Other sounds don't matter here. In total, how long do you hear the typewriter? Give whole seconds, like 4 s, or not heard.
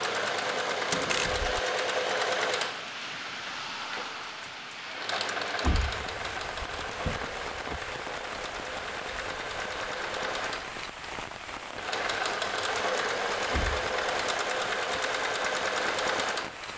not heard.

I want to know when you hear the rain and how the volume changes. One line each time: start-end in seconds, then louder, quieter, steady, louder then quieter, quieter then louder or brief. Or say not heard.
0.0-16.7 steady.